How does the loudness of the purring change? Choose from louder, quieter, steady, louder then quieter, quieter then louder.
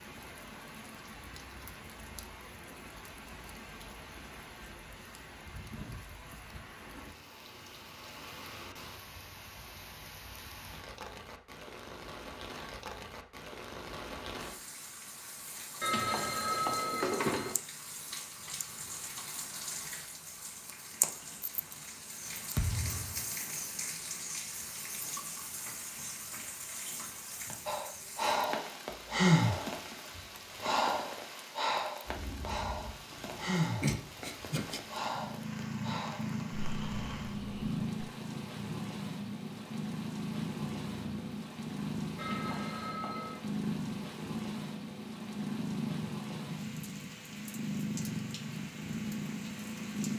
steady.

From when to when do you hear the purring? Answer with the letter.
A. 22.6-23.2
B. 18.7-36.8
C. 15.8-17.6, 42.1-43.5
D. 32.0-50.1
D.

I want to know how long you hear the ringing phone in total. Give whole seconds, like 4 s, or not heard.
3 s.